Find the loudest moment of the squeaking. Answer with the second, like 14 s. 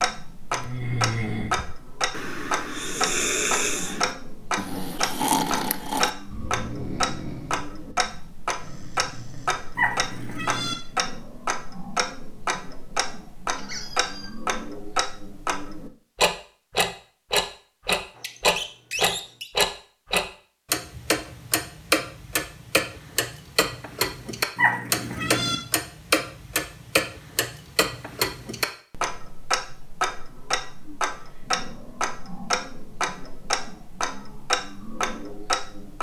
19 s.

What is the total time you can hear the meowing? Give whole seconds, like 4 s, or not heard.
2 s.